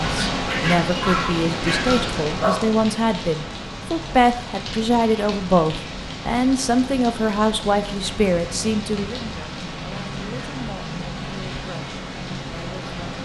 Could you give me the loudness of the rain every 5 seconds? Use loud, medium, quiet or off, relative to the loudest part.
loud, medium, loud.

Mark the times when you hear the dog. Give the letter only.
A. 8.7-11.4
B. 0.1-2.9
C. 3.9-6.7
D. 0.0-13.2
B.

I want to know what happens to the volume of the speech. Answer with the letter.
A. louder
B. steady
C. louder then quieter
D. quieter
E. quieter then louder
D.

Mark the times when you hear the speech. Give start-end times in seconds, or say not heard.
0.0-13.2.